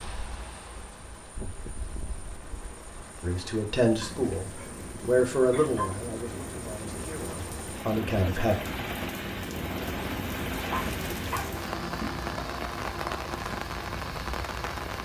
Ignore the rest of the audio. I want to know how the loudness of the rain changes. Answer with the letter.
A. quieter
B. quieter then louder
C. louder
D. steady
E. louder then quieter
C.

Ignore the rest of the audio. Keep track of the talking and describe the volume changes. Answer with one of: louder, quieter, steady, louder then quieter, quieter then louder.
quieter then louder.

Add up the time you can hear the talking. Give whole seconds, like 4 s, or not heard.
5 s.